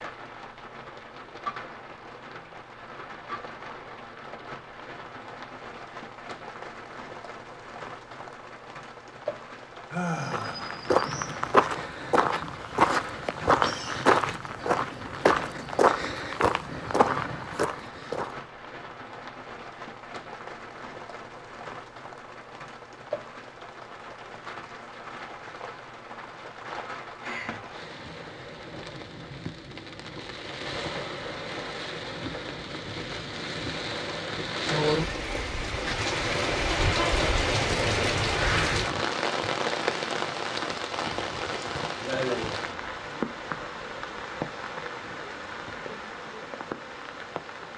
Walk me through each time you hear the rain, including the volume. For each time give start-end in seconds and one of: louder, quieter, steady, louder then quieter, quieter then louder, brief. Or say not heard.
0.0-47.7 louder.